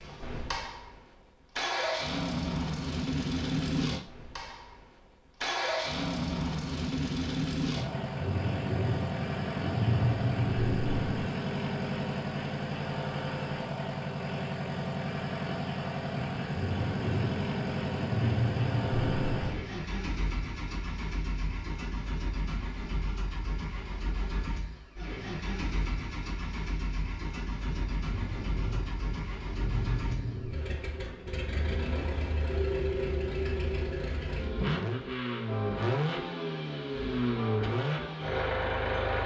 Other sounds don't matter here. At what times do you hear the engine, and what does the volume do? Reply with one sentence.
You can hear the engine from 0.0 to 39.2 s, getting quieter then louder.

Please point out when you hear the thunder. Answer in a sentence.
You can hear the thunder from 7.8 to 11.3 s, from 16.1 to 19.6 s and from 27.6 to 30.6 s.